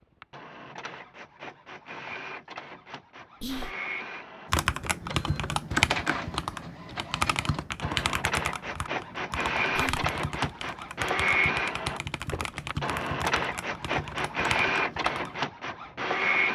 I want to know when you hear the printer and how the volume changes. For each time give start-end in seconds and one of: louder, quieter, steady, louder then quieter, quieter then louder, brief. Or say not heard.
0.0-16.5 louder.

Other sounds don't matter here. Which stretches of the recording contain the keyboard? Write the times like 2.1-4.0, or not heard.
4.5-15.4.